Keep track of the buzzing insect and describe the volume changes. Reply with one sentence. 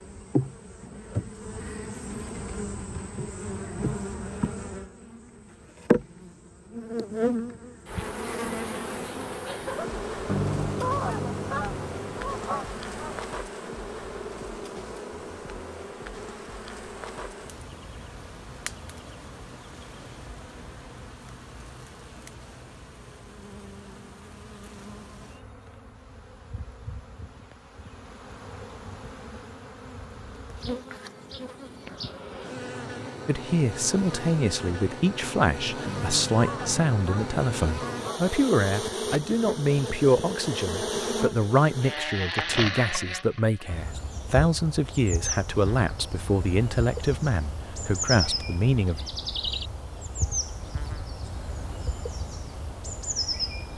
The loudness of the buzzing insect goes down, then up.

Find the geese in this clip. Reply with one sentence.
The geese can be heard from 10.2 to 13.2 s and from 35.9 to 38.4 s.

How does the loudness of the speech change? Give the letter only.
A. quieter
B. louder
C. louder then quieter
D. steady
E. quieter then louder
D.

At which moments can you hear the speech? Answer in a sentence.
The speech can be heard from 33.2 to 49.0 s.